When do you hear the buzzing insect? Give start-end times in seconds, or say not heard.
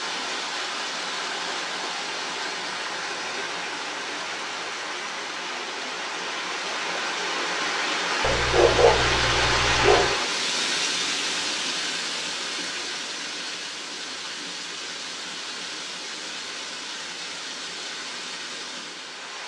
not heard.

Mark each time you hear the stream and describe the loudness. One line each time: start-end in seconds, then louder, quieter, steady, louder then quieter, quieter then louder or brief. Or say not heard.
0.0-19.4 louder then quieter.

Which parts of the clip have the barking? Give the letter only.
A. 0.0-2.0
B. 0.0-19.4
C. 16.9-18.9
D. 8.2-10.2
D.